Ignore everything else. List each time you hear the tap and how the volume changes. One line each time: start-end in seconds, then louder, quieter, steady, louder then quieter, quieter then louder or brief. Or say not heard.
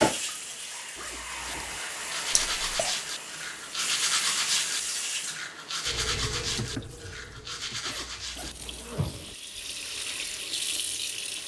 0.0-11.4 quieter then louder.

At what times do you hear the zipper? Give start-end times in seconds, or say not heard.
0.9-1.8, 7.8-9.3.